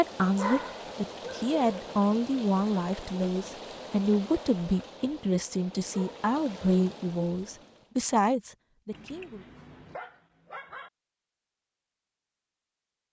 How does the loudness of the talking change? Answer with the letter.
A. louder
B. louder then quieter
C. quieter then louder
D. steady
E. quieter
D.